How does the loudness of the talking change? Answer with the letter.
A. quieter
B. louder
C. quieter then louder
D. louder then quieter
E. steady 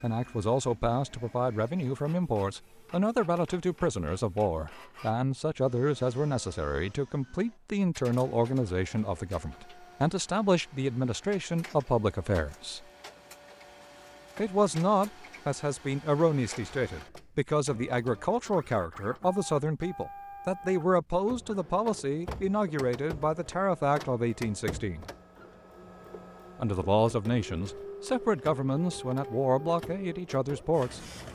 E.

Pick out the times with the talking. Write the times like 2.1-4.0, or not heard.
0.0-12.8, 14.3-25.1, 26.6-31.0.